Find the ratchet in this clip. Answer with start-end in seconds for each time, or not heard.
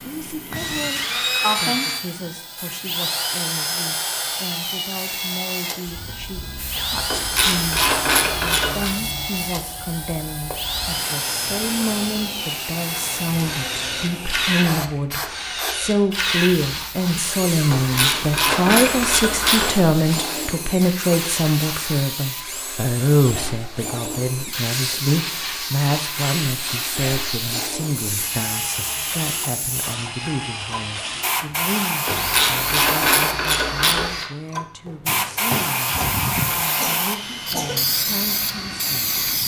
7.1-8.9, 17.7-19.7, 32.0-34.1.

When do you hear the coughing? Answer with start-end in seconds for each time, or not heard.
0.5-2.3, 35.8-37.9.